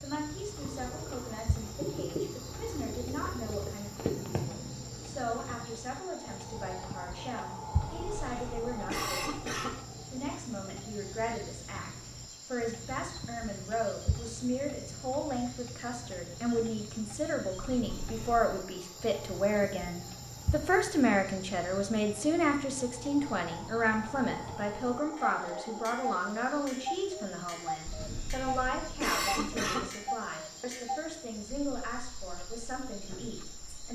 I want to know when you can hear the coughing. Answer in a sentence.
You can hear the coughing from 7.8 to 9.8 s, from 17.8 to 18.5 s and from 27.9 to 29.9 s.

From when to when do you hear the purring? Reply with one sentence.
You can hear the purring from 0.5 to 5.6 s.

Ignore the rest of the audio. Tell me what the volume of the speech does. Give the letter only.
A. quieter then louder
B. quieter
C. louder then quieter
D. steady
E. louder
C.